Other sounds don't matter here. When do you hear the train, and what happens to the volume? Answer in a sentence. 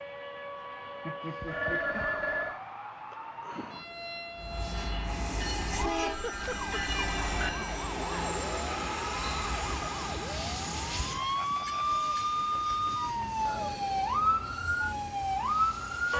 The train can be heard from 4.3 to 16.1 s, getting quieter.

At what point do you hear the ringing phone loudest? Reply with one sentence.
The volume of the ringing phone peaks at 2 seconds.